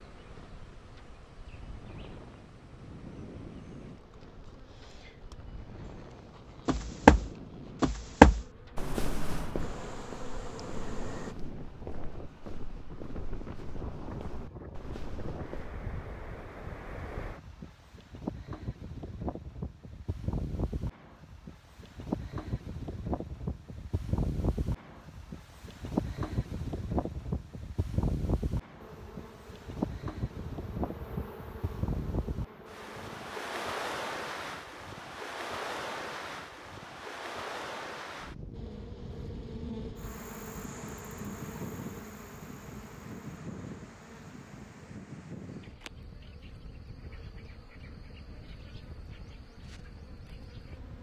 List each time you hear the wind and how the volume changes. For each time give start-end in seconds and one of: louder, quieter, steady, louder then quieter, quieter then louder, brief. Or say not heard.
0.0-50.9 louder then quieter.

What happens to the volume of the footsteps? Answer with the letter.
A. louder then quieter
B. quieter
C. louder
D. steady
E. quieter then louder
B.